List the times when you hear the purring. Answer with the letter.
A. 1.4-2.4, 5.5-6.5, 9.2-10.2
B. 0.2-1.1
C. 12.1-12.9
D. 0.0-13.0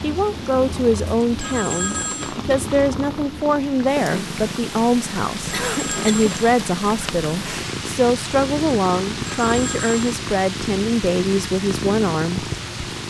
D.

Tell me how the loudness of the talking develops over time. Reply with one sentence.
The volume of the talking stays about the same.